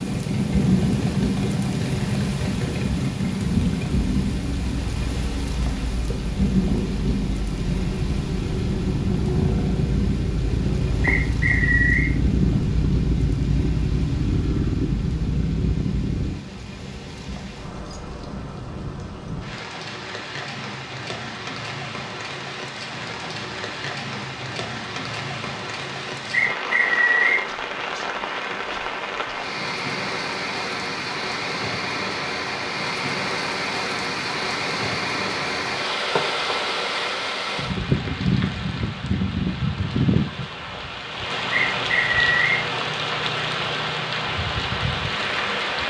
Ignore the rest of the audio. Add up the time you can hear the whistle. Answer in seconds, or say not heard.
3 s.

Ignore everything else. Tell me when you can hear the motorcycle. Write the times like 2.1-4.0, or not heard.
0.0-16.4.